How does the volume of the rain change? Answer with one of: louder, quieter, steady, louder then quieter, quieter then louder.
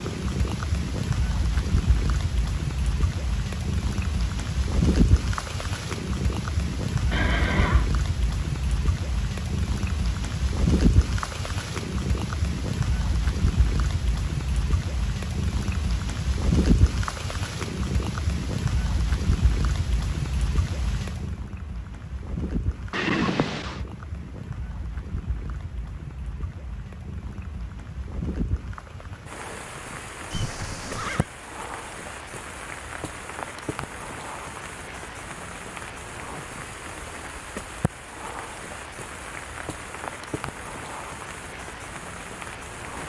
quieter.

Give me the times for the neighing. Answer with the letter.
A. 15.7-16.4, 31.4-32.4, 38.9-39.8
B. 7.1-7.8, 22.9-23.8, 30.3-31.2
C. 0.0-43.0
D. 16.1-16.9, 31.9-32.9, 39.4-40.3
B.